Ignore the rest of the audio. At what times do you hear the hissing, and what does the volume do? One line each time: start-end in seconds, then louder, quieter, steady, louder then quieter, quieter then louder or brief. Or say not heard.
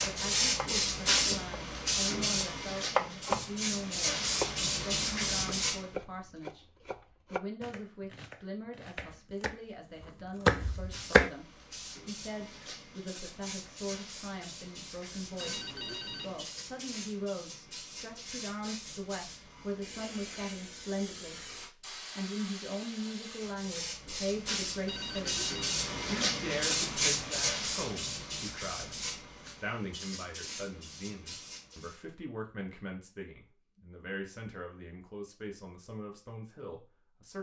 0.0-5.8 quieter then louder
10.6-32.0 louder then quieter.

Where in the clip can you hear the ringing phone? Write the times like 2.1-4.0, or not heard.
15.3-16.4, 24.9-26.1.